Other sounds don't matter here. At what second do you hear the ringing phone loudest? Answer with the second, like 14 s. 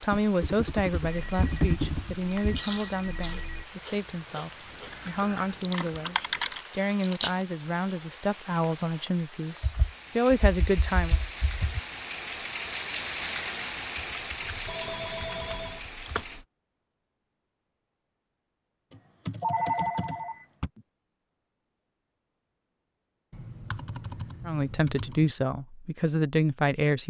20 s.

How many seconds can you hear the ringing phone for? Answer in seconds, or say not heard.
5 s.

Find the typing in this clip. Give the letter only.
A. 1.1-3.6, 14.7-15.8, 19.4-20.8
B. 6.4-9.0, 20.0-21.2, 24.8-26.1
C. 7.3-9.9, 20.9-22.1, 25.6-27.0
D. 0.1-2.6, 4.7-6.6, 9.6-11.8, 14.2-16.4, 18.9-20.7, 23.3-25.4
D.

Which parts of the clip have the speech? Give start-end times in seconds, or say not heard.
0.0-11.2, 24.4-27.0.